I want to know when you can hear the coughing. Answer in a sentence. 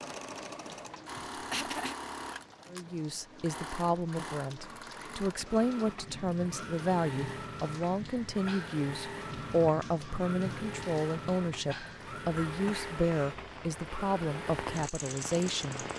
The coughing can be heard from 1.4 to 1.9 s and from 12.3 to 13.3 s.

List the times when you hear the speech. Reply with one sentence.
The speech can be heard from 2.7 to 15.8 s.